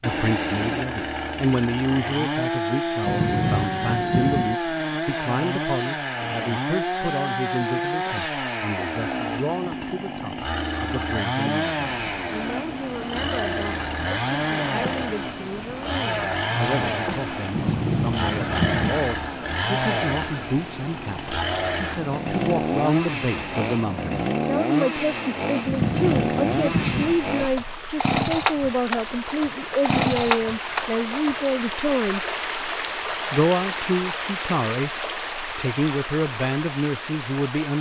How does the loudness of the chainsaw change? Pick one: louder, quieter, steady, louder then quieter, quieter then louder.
steady.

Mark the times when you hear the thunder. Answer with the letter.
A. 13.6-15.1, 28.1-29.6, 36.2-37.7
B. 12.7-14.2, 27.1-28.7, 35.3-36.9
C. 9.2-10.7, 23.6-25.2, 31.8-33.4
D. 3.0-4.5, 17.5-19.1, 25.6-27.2
D.